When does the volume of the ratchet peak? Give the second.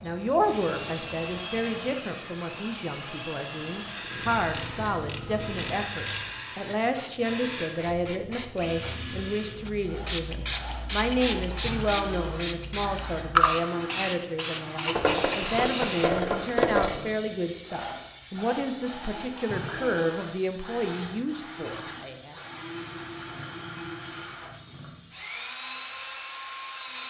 17 s.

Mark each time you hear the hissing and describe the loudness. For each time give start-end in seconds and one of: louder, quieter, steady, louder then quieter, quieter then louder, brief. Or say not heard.
0.0-27.0 louder then quieter.